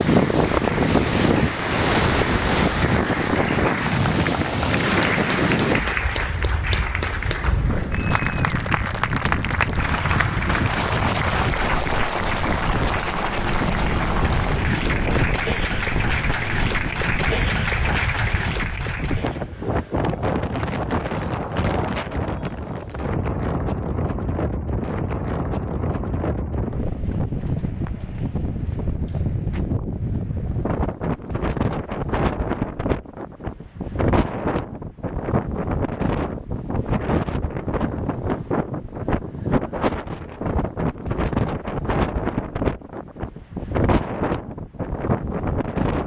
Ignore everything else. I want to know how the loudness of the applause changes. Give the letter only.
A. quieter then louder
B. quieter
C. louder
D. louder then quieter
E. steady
E.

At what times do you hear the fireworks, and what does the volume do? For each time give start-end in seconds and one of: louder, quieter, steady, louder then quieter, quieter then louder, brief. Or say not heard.
not heard.